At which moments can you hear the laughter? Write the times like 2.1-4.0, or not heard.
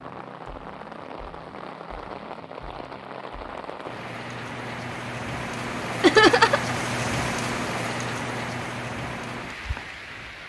6.0-6.8.